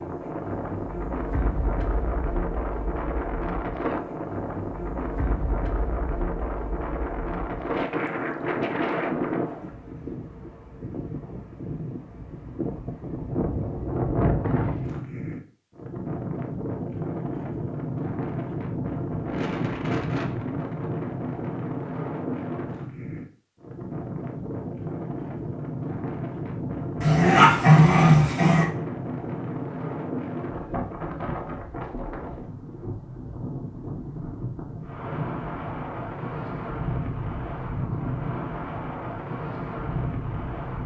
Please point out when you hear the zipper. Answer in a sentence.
You can't hear the zipper here.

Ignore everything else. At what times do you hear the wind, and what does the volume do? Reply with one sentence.
The wind can be heard from 0.0 to 40.8 s, at a steady volume.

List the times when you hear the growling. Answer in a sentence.
The growling can be heard from 27.0 to 28.6 s.